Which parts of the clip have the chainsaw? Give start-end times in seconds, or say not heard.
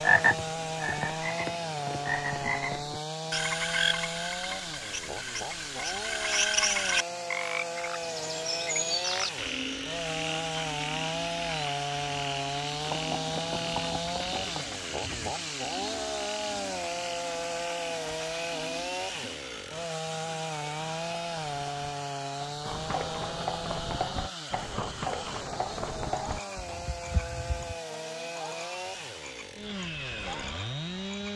0.0-31.3.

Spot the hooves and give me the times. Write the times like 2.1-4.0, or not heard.
12.8-15.3, 20.6-27.8.